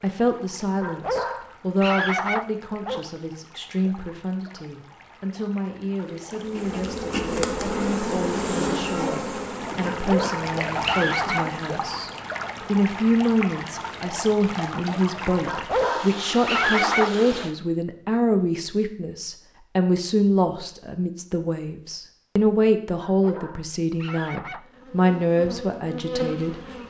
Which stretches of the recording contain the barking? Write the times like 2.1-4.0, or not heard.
0.8-3.0, 9.8-11.4, 15.4-17.1, 23.0-24.6.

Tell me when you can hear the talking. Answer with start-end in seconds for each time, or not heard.
0.0-26.6.